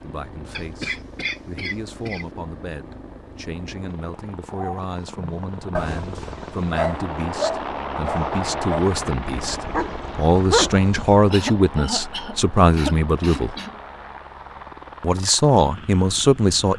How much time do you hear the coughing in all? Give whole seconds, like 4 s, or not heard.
4 s.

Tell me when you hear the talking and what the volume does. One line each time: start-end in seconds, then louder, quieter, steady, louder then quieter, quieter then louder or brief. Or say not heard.
0.0-13.6 louder
15.0-16.7 brief.